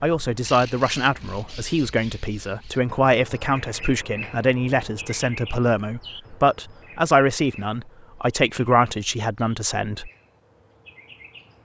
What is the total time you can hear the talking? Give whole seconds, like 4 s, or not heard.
10 s.